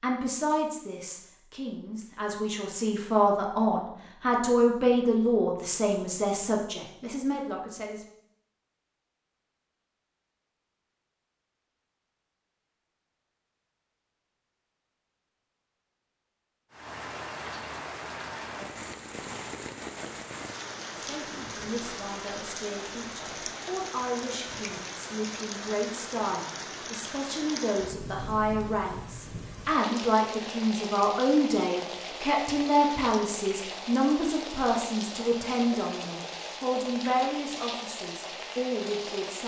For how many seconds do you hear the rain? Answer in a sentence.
The rain can be heard for 23 seconds in total.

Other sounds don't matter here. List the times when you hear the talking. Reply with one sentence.
You can hear the talking from 0.0 to 8.1 s and from 20.9 to 39.4 s.